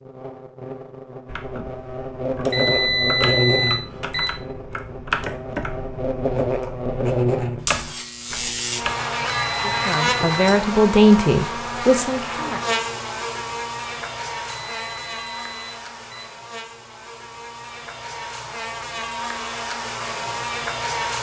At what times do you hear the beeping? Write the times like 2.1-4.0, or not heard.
2.5-4.2, 9.3-10.5, 14.4-16.2.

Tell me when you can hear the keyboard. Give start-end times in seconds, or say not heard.
1.3-8.9.